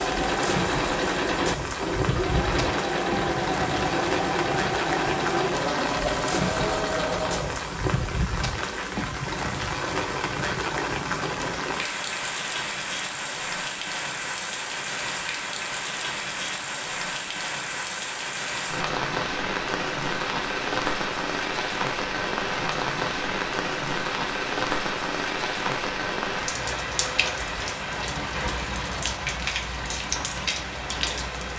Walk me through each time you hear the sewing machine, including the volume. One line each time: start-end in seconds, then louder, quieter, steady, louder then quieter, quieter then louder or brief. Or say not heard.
0.0-7.7 steady.